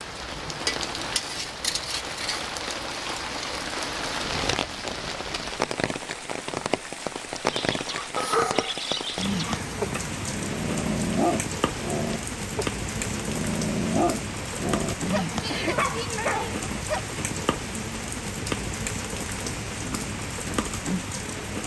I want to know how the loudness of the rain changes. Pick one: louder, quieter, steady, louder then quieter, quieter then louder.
steady.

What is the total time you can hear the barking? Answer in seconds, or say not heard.
10 s.